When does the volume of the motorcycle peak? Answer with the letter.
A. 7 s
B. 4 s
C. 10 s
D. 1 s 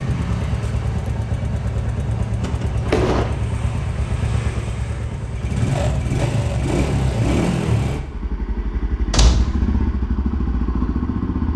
A.